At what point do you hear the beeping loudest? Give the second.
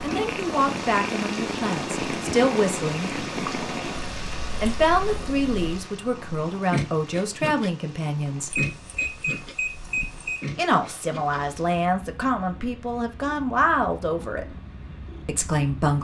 9 s.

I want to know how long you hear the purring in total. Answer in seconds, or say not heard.
16 s.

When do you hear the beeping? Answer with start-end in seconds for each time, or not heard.
8.5-10.5.